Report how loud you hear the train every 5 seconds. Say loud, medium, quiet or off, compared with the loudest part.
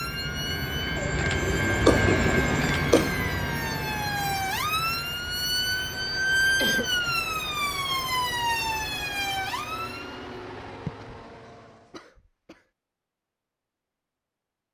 loud, medium, quiet.